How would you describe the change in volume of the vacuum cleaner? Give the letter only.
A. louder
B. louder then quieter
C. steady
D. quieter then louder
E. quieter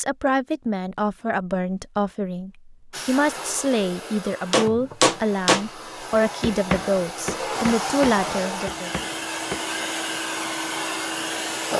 A.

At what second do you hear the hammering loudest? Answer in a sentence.
The loudest moment of the hammering is at 5 seconds.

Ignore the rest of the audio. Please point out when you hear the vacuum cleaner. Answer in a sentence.
The vacuum cleaner can be heard from 2.9 to 11.7 s.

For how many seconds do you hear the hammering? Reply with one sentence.
You can hear the hammering for 5 seconds altogether.